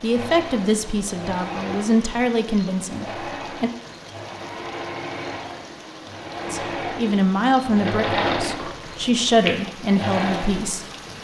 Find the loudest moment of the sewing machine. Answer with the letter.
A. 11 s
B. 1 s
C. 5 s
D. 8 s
D.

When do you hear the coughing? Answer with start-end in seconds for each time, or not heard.
not heard.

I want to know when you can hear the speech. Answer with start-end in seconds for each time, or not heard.
0.0-3.7, 6.5-10.8.